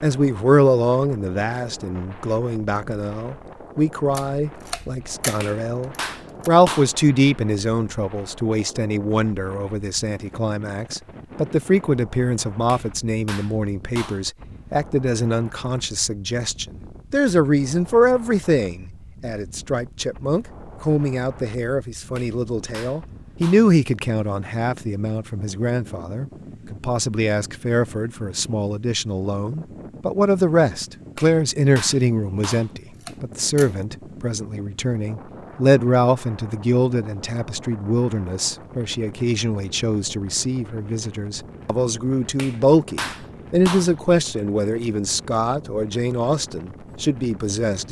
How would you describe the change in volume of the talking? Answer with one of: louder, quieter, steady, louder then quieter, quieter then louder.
steady.